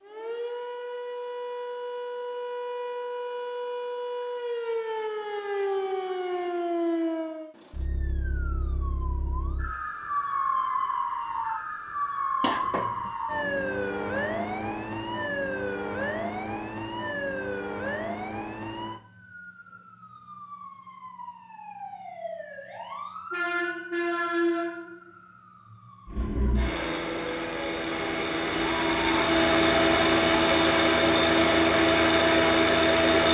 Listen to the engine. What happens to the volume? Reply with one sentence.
The volume of the engine goes up.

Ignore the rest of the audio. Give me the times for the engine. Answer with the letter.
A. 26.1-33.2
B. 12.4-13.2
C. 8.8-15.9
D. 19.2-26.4
A.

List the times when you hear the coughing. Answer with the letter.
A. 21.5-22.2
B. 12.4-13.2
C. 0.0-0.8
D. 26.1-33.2
B.